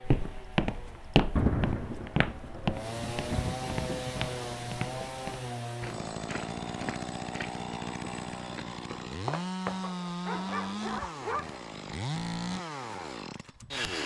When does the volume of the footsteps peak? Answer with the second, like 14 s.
1 s.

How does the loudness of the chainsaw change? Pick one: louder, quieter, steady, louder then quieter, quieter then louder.
louder.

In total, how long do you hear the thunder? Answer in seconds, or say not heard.
4 s.